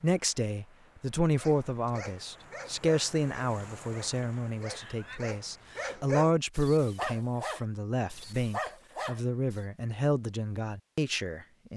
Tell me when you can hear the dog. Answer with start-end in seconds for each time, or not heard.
1.4-9.6.